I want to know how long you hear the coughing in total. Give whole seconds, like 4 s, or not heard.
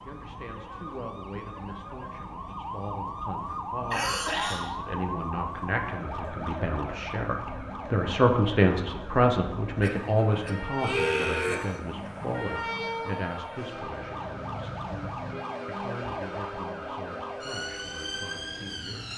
3 s.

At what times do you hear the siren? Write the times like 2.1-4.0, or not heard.
0.0-19.1.